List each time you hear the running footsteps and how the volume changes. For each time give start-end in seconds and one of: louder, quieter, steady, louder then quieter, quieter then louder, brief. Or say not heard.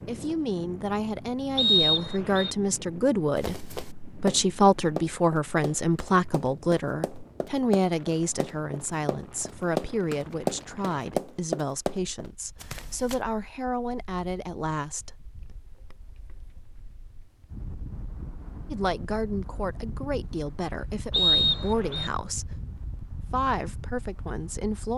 3.4-13.2 quieter then louder.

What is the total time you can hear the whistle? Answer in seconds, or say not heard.
2 s.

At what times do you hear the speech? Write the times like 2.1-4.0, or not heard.
0.1-15.2, 18.7-24.9.